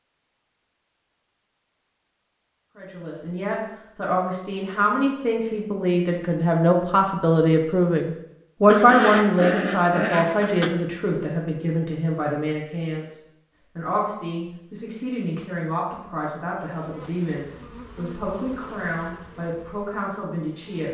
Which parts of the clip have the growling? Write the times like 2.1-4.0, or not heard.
8.7-10.7.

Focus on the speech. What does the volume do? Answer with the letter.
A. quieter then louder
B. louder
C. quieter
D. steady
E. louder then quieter
E.